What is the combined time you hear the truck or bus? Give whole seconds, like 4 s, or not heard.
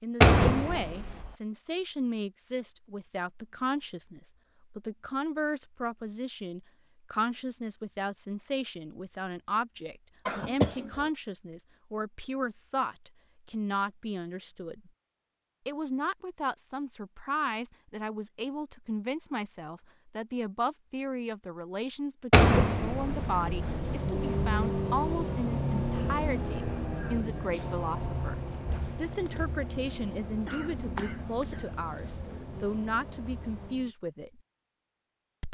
11 s.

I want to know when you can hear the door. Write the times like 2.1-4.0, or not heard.
0.2-1.3, 22.3-23.4.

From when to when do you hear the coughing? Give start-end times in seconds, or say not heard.
10.2-11.1, 30.4-32.2.